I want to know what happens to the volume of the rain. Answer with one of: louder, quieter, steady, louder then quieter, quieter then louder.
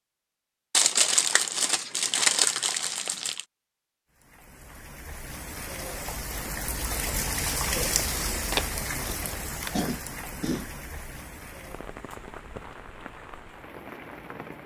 louder then quieter.